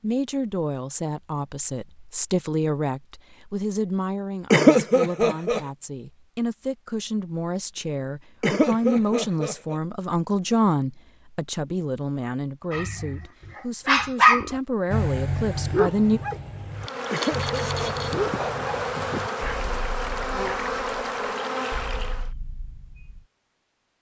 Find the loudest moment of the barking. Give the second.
14 s.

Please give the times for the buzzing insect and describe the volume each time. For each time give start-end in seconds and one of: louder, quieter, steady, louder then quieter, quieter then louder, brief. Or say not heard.
16.7-22.3 steady.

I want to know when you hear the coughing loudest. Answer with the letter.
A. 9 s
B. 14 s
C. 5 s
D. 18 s
C.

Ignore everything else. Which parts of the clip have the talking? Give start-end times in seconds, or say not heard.
0.0-16.2.